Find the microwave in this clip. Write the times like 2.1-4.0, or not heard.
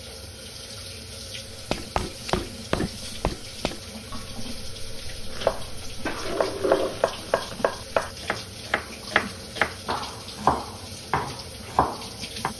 not heard.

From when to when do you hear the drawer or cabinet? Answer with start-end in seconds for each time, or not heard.
6.0-7.0.